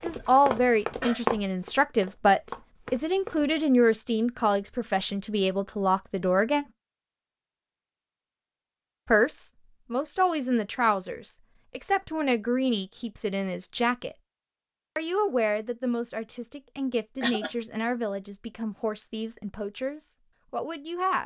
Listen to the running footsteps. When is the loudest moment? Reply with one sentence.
The volume of the running footsteps peaks at 1 second.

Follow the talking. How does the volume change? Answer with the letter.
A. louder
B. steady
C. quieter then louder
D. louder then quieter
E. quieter
E.